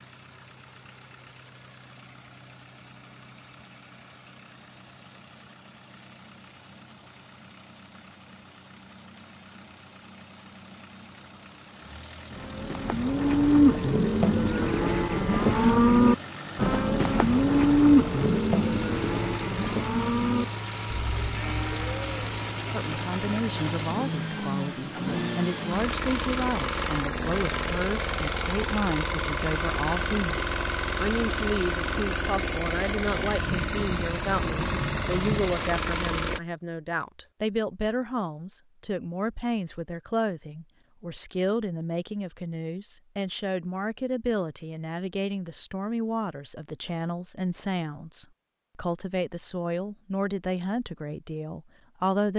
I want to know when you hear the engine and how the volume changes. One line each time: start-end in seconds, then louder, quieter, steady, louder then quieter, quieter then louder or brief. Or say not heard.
0.0-36.4 louder.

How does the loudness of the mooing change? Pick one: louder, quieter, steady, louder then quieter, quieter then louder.
quieter.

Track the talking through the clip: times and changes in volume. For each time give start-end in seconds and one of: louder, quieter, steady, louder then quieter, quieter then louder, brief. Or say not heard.
22.7-52.3 steady.